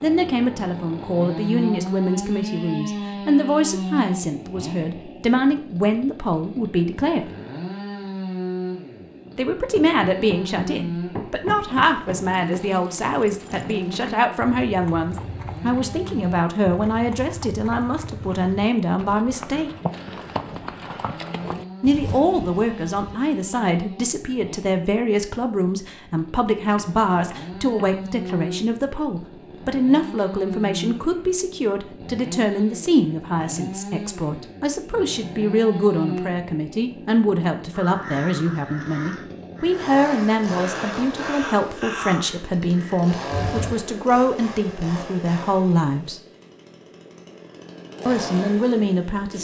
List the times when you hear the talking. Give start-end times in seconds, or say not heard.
0.0-7.3, 9.3-19.7, 21.8-46.2, 48.0-49.4.